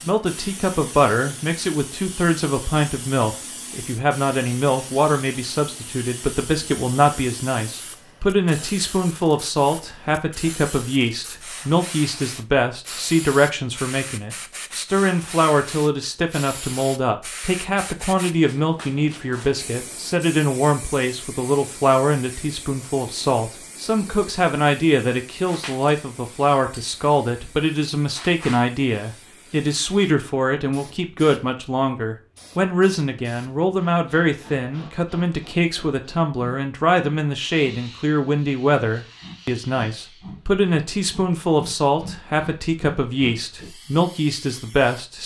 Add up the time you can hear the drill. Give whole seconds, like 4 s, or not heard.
not heard.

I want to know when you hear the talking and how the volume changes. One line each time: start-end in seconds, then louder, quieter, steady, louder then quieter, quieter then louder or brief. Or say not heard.
0.0-45.2 steady.